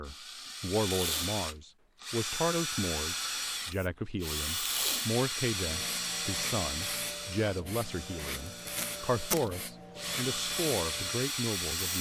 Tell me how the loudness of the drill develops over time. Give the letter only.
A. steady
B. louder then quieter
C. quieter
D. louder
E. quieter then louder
E.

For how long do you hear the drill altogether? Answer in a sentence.
The drill can be heard for 12 seconds in total.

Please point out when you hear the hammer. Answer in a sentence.
You can't hear the hammer here.